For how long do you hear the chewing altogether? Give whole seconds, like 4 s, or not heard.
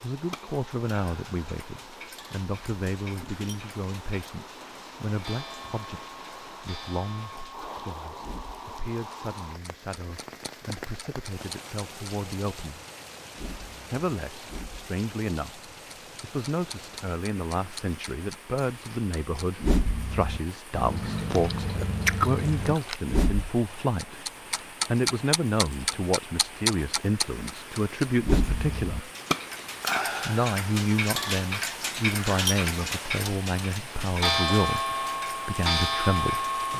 2 s.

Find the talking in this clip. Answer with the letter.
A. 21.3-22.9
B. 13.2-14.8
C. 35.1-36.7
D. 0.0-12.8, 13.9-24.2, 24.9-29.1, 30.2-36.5
D.